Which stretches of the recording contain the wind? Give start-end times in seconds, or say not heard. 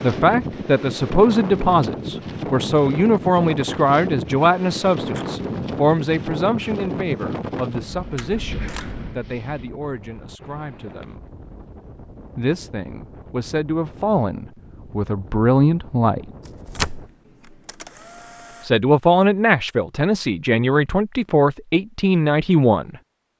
0.0-17.1.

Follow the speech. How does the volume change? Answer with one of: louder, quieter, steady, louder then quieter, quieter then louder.
quieter then louder.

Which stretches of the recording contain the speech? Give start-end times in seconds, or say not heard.
0.0-11.2, 12.3-16.2, 18.6-22.9.